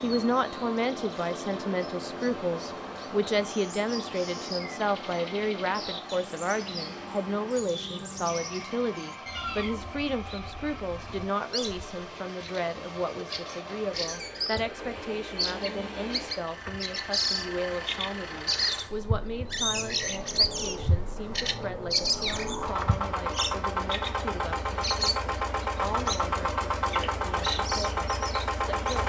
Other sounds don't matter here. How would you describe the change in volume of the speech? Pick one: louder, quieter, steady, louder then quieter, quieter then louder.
quieter.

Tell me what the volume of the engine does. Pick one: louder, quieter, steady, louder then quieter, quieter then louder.
louder.